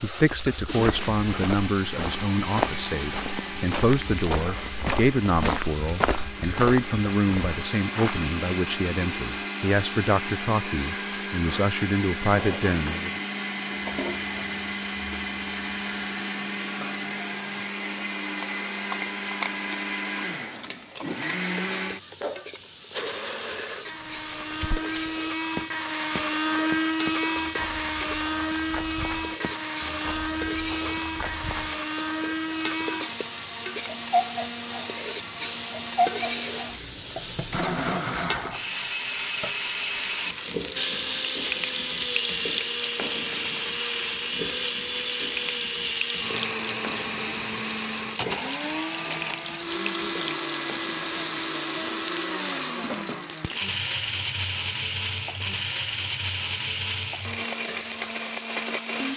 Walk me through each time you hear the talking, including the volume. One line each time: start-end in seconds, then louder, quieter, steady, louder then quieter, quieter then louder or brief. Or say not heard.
0.0-13.2 steady.